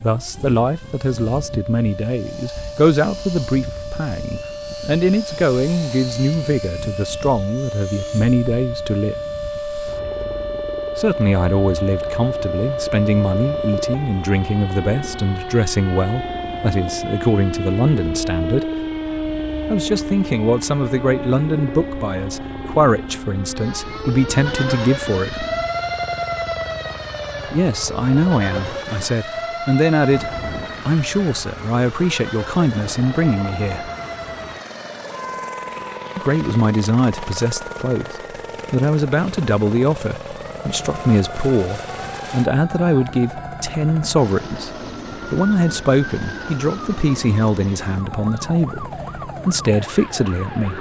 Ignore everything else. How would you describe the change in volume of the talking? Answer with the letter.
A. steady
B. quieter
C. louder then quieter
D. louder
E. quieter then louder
A.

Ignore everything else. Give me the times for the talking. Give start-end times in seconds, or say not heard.
0.0-9.2, 10.9-18.7, 19.7-25.4, 27.4-33.9, 36.1-50.7.